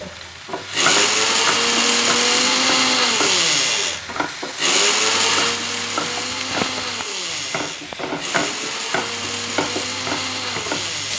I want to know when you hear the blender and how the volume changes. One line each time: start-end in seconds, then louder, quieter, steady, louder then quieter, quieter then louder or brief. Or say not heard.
0.0-11.1 quieter.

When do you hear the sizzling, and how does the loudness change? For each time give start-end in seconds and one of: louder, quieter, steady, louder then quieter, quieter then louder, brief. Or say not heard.
0.0-11.1 steady.